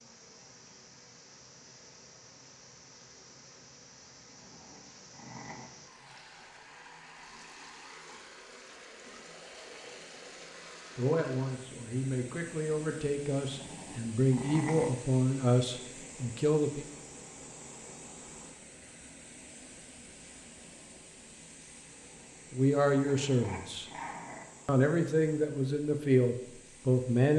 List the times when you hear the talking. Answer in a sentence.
You can hear the talking from 10.9 to 16.9 s, from 22.5 to 23.9 s and from 24.6 to 27.3 s.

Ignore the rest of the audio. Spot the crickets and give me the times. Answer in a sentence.
You can't hear the crickets here.